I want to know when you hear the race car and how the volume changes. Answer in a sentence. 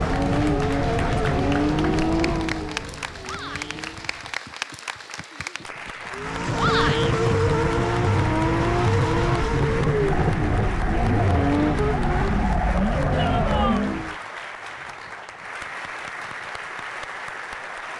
The race car can be heard from 0.0 to 4.4 s, getting quieter; and from 6.1 to 14.2 s, at a steady volume.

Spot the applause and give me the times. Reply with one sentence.
You can hear the applause from 0.0 to 17.9 s.